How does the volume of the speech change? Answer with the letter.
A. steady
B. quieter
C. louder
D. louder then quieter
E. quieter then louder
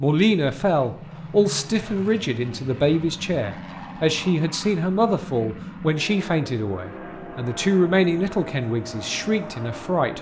A.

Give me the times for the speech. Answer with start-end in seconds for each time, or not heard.
0.0-10.1.